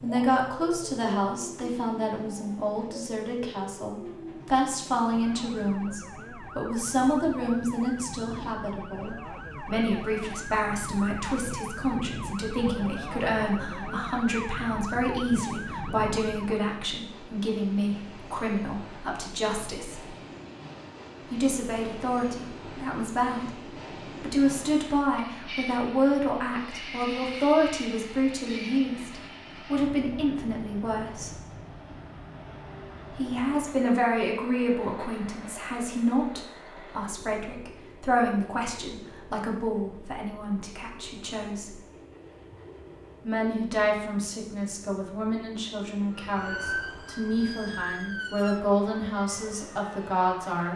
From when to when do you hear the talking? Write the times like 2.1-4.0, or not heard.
0.0-20.1, 21.3-23.6, 24.2-31.4, 33.1-41.8, 43.2-50.7.